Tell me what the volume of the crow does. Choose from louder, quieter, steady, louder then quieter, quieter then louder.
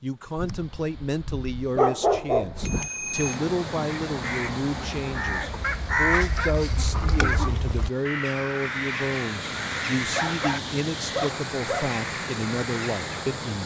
quieter.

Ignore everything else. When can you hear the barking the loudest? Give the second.
2 s.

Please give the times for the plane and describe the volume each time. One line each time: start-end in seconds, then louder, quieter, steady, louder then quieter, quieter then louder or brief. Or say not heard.
not heard.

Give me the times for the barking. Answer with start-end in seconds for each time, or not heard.
0.3-2.9, 5.6-7.5, 10.2-11.9.